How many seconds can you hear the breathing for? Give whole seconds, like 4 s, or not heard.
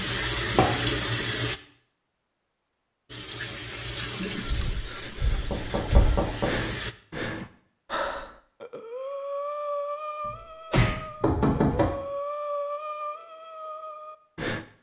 10 s.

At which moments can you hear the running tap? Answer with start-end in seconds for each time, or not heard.
0.0-1.6, 3.0-7.0.